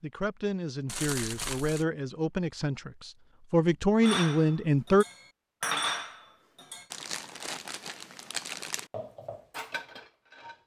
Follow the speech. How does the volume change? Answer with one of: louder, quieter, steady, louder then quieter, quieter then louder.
louder.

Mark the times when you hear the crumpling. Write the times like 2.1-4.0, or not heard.
0.8-1.9, 6.9-8.8.